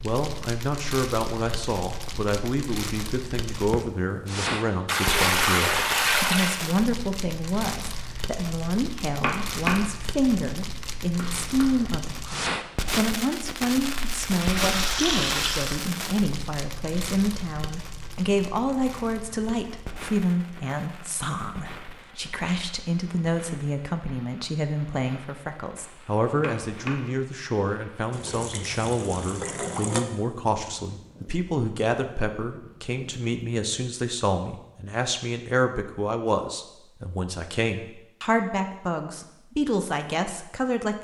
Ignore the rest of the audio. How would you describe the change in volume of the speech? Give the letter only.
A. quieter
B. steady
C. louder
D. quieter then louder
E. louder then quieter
B.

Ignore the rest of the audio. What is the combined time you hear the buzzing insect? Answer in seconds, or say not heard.
not heard.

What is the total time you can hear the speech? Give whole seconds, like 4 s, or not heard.
41 s.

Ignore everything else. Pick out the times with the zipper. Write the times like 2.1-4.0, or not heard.
not heard.